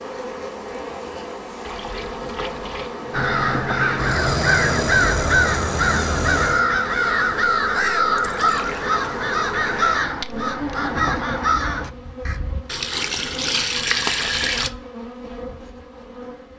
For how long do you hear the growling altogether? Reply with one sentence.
You can hear the growling for 3 seconds altogether.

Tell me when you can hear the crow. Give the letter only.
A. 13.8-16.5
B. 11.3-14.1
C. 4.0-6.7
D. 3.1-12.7
D.